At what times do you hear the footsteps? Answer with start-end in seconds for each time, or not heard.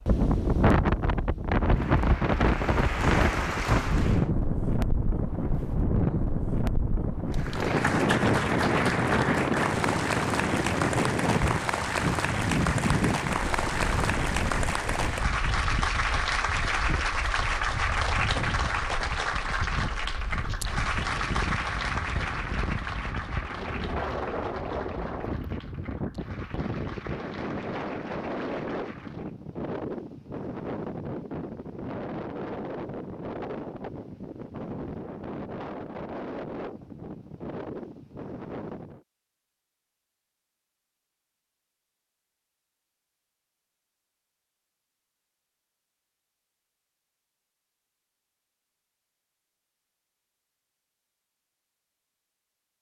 not heard.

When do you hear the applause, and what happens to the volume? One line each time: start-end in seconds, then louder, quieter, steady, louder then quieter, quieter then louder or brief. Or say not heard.
1.6-4.3 brief
7.3-29.3 quieter.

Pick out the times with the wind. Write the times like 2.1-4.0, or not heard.
0.0-39.0.